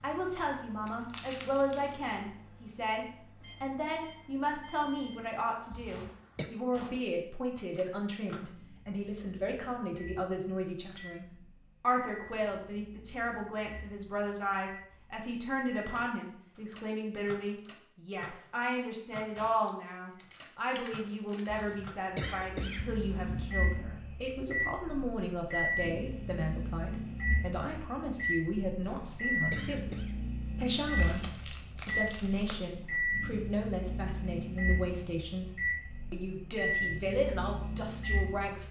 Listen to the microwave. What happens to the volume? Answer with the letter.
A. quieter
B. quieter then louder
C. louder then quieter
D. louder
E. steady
D.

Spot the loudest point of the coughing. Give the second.
22 s.